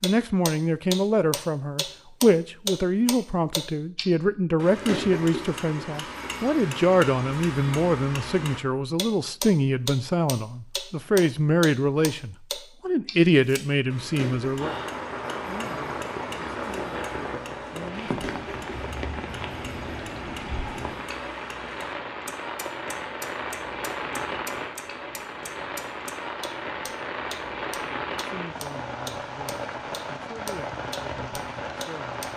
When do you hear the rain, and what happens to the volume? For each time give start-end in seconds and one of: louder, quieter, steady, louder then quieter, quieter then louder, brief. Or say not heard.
14.6-32.3 steady.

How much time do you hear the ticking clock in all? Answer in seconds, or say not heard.
32 s.